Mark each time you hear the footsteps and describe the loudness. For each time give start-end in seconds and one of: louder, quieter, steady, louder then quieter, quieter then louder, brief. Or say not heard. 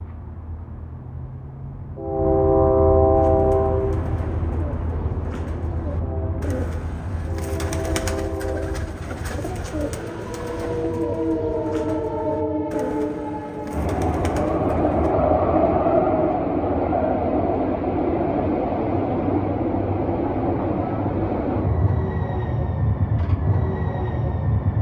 not heard.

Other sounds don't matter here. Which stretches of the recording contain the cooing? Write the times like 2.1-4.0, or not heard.
3.1-15.2.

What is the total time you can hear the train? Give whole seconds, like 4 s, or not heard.
25 s.